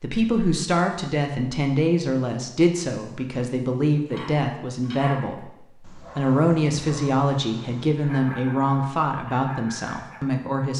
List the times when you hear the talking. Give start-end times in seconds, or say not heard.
0.0-10.7.